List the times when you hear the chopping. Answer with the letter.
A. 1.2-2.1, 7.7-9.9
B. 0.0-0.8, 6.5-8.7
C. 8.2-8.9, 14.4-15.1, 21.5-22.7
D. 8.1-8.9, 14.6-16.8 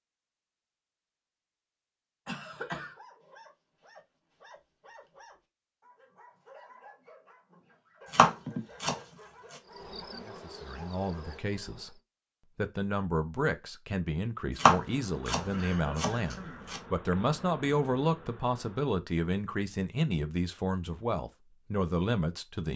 D.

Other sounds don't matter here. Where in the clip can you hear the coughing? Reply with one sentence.
You can hear the coughing from 2.2 to 3.0 s, from 8.4 to 9.1 s and from 15.5 to 16.7 s.